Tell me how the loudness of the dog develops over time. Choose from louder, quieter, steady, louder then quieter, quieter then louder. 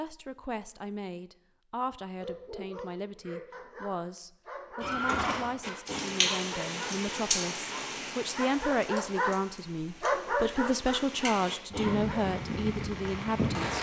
louder then quieter.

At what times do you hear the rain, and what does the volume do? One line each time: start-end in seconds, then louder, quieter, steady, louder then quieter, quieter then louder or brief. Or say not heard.
5.6-13.7 quieter then louder.